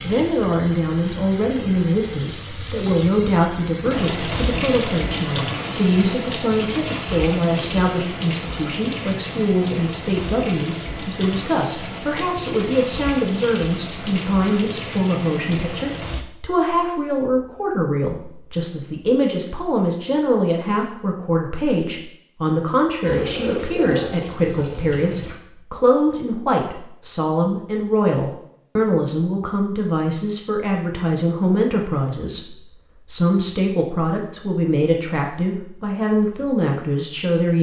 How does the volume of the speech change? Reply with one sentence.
The volume of the speech stays about the same.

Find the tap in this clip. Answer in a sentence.
The tap can be heard from 0.0 to 16.2 s and from 23.0 to 25.4 s.